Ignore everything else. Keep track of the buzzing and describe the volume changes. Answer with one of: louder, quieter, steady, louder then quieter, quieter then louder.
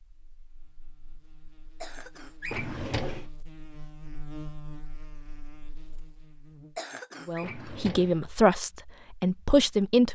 louder then quieter.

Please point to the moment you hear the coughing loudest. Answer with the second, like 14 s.
7 s.